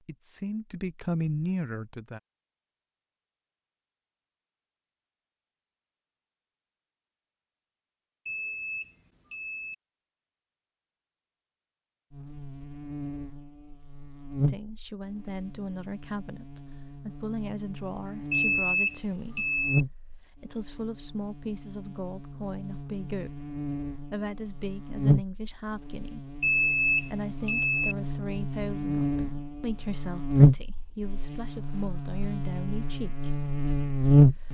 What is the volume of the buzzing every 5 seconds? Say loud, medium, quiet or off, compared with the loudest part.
off, off, quiet, quiet, quiet, medium, loud.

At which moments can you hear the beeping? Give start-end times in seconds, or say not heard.
8.2-9.8, 18.3-19.9, 26.4-27.9.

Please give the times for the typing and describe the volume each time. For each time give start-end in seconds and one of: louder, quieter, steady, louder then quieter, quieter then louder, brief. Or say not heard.
not heard.